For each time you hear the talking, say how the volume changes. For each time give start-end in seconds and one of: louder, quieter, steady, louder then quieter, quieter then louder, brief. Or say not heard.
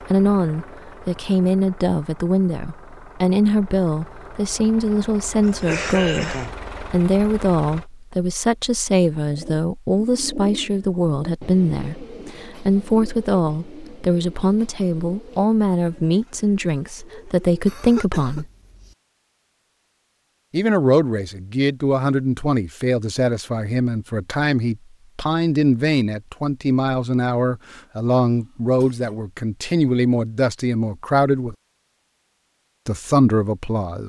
0.1-18.4 steady
20.5-31.6 steady
32.9-34.0 brief.